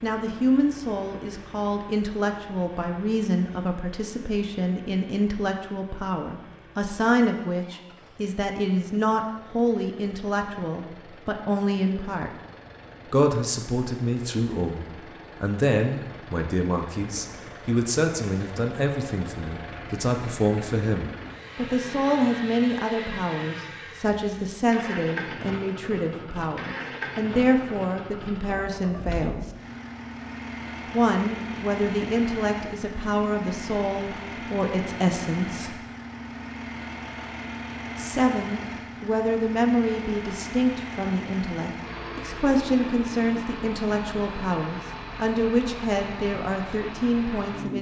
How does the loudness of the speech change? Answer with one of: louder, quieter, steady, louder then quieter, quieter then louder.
steady.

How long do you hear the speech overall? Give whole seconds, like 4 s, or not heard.
43 s.